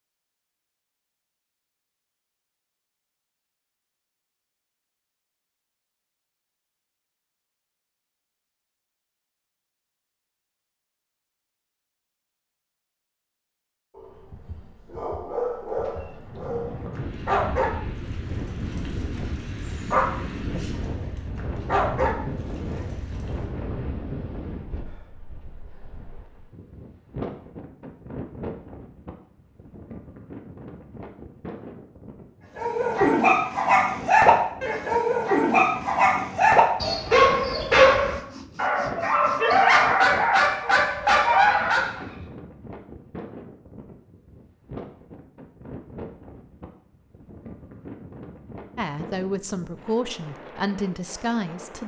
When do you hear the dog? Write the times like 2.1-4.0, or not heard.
13.9-23.2, 32.5-42.0.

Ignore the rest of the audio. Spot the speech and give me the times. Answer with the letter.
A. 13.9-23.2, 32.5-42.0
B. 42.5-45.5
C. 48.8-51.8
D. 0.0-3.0
C.